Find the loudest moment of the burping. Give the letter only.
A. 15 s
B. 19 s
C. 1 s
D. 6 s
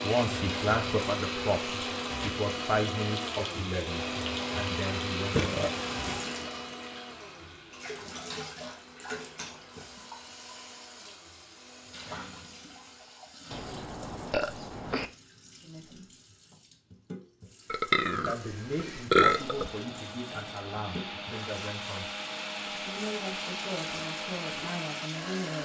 B.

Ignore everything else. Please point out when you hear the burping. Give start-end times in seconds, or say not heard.
5.3-6.2, 13.5-15.1, 17.7-19.7.